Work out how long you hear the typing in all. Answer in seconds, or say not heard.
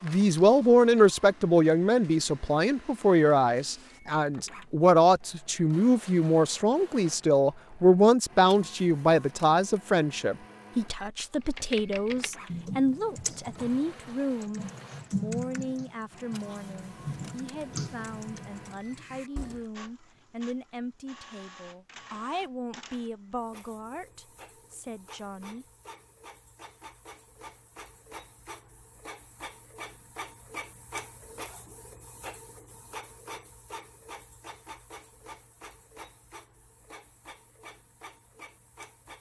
8 s.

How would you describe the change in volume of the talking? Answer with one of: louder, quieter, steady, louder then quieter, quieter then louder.
quieter.